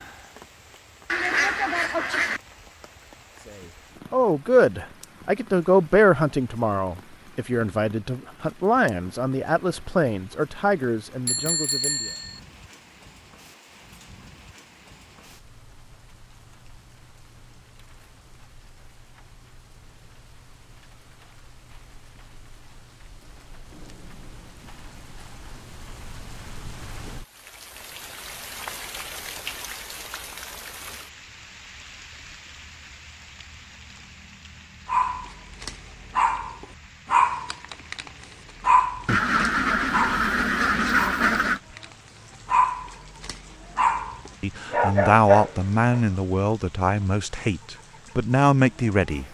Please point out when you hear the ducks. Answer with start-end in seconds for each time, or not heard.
1.1-2.4, 39.0-41.6.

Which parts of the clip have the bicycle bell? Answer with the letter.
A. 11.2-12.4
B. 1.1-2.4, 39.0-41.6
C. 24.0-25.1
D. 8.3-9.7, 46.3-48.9
A.